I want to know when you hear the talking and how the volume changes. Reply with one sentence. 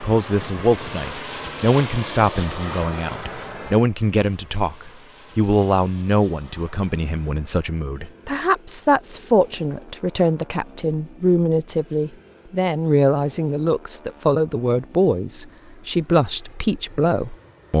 You can hear the talking from 0.0 to 17.7 s, at a steady volume.